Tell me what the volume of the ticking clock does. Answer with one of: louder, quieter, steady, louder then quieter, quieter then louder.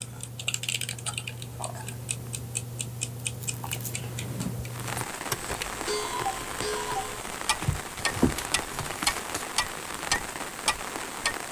louder.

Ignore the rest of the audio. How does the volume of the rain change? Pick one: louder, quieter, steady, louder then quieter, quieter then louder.
steady.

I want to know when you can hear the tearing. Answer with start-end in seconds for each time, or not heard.
3.2-4.0, 7.6-9.4.